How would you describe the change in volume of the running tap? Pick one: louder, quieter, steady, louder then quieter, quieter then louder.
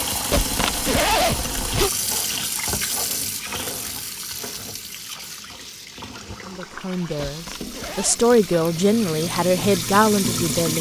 quieter then louder.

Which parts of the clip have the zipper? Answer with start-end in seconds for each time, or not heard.
0.3-1.9, 7.2-8.2.